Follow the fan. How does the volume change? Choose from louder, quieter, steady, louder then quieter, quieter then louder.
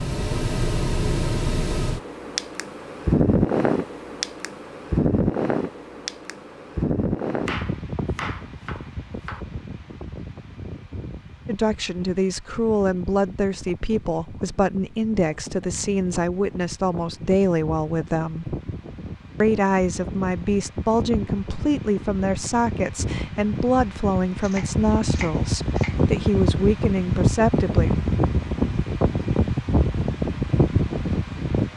quieter then louder.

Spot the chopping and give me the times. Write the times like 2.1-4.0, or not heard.
7.5-9.4, 24.4-25.9.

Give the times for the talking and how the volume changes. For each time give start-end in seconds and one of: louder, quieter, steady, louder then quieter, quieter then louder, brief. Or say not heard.
11.4-18.6 steady
19.4-27.9 steady.